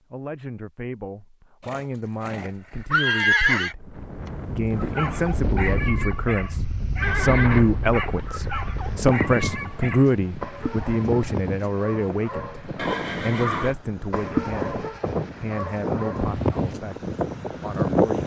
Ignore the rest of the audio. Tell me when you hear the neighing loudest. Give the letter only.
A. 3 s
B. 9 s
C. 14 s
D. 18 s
A.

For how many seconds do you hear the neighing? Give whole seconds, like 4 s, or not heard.
6 s.